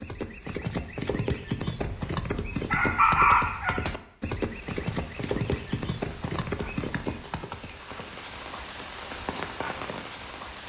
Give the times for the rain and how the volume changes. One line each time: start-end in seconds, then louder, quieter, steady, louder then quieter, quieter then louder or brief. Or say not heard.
4.2-10.6 louder.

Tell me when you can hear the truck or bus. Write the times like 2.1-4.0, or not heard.
not heard.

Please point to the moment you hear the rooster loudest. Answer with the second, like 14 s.
3 s.